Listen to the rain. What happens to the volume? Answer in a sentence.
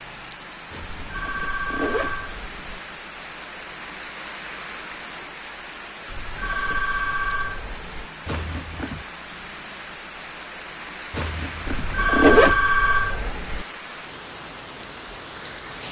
The loudness of the rain stays about the same.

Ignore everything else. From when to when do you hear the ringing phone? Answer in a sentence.
The ringing phone can be heard from 0.9 to 2.8 s, from 6.0 to 8.1 s and from 11.7 to 13.7 s.